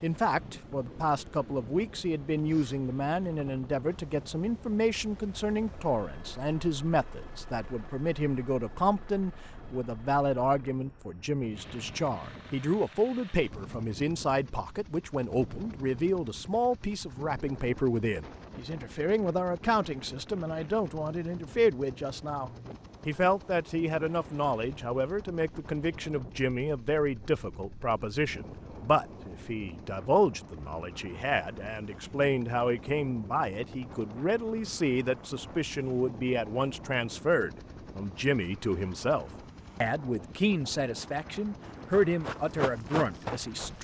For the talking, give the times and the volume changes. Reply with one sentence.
The talking can be heard from 0.0 to 43.7 s, at a steady volume.